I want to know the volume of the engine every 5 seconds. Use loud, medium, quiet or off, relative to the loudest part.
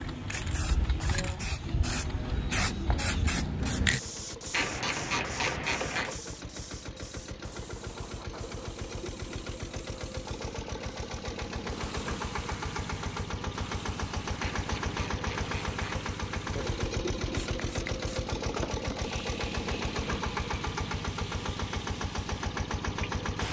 medium, medium, loud, loud, loud.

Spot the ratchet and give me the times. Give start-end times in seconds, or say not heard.
4.5-6.2, 14.4-16.1.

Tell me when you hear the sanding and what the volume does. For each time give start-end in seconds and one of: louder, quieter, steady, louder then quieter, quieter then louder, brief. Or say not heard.
not heard.